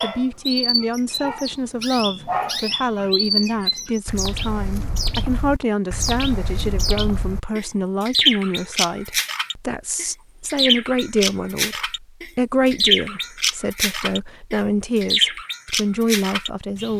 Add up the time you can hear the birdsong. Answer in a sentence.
You can hear the birdsong for 17 seconds altogether.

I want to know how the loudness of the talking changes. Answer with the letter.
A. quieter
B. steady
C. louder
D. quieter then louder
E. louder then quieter
B.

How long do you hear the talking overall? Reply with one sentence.
You can hear the talking for 17 seconds altogether.